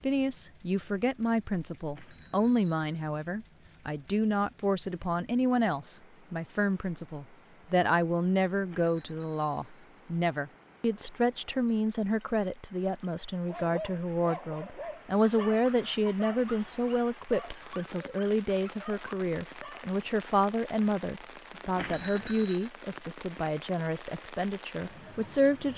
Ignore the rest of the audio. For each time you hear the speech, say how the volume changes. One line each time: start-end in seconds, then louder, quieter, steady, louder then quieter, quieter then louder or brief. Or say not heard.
0.0-25.7 steady.